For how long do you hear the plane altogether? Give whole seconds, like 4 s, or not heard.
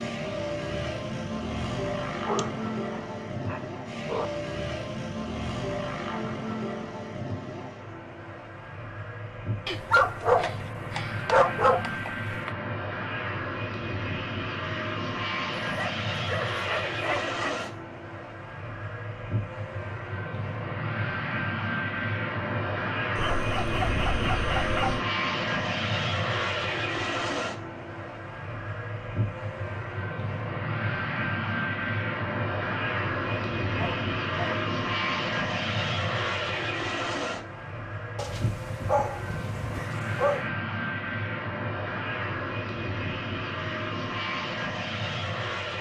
46 s.